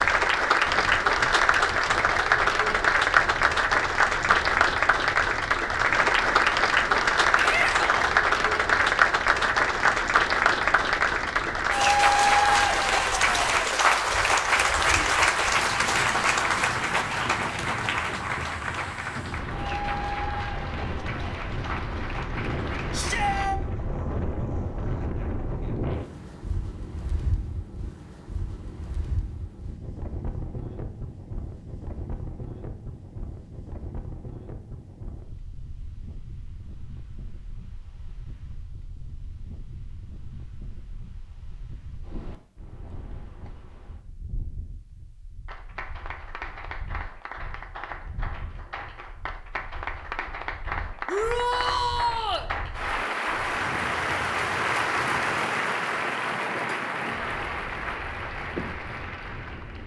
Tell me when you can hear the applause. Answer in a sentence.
You can hear the applause from 0.0 to 23.5 s and from 45.5 to 59.8 s.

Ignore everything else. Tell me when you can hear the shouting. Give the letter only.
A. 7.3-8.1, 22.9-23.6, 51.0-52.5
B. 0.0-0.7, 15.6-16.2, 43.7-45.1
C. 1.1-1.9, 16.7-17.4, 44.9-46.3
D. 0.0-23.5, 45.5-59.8
A.